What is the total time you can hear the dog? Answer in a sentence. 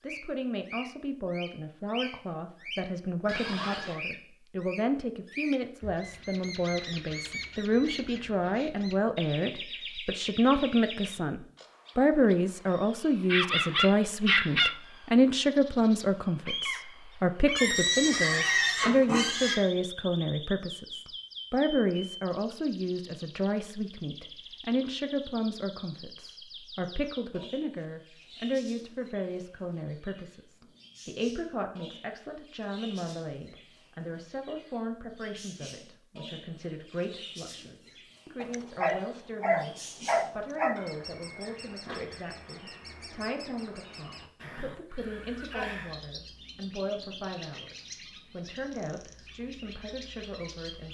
You can hear the dog for 4 seconds altogether.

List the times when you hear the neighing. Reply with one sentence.
The neighing can be heard from 3.2 to 4.0 s, from 17.6 to 19.6 s and from 44.4 to 46.0 s.